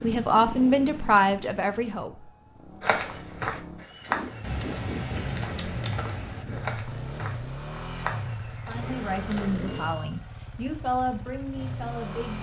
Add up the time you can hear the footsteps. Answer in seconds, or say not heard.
7 s.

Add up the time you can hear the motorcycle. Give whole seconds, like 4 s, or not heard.
12 s.